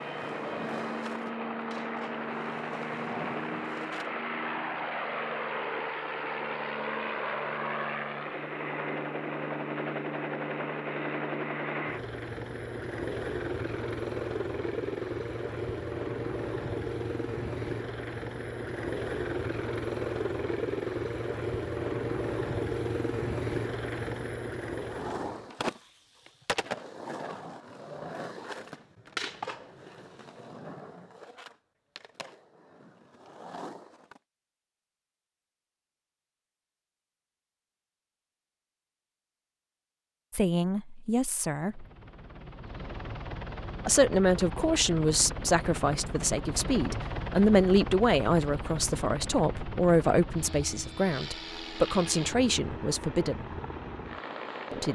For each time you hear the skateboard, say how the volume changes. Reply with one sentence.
The skateboard can be heard from 0.0 to 4.1 s, getting quieter then louder; and from 24.8 to 34.2 s, getting quieter.